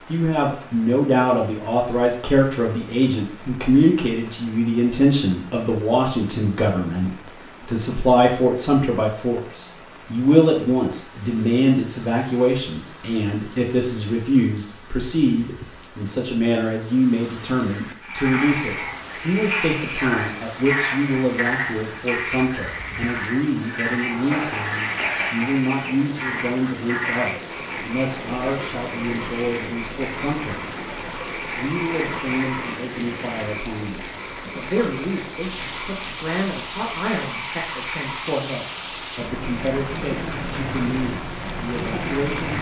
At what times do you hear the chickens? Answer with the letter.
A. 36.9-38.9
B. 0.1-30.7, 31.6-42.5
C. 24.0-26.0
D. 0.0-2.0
C.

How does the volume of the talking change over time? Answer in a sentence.
The volume of the talking goes down.